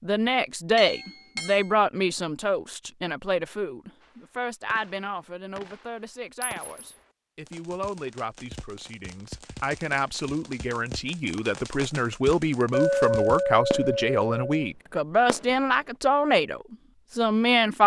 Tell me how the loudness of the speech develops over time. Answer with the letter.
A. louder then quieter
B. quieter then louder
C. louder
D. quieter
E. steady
B.